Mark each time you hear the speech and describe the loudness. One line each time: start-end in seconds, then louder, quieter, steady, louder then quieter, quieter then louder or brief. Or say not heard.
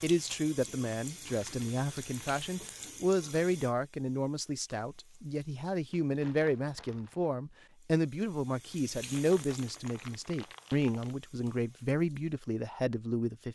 0.0-13.4 steady.